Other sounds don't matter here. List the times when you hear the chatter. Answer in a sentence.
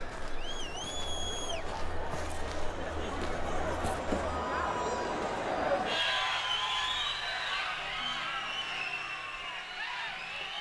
The chatter can be heard from 0.0 to 10.5 s.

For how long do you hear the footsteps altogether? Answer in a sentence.
The footsteps can be heard for 4 seconds in total.